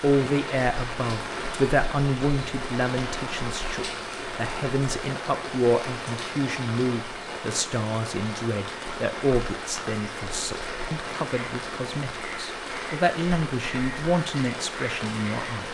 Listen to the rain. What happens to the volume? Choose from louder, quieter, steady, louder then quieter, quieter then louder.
steady.